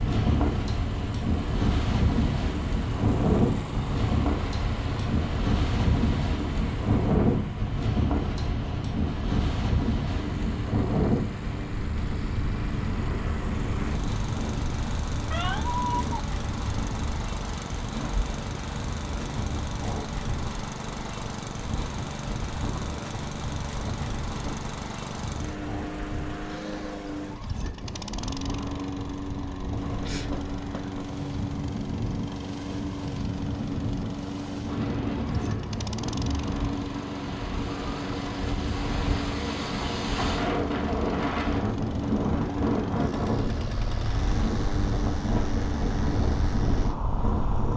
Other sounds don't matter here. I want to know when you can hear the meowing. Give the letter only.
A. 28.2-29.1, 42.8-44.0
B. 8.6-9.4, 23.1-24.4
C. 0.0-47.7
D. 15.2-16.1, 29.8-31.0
D.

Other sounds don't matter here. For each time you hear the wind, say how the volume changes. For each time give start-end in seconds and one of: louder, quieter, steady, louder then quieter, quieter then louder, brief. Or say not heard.
0.0-47.7 quieter then louder.